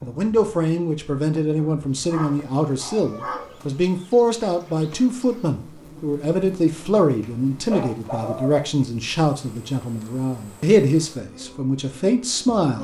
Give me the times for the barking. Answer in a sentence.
The barking can be heard from 1.6 to 3.5 s and from 7.2 to 8.6 s.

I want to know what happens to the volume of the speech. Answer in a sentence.
The volume of the speech stays about the same.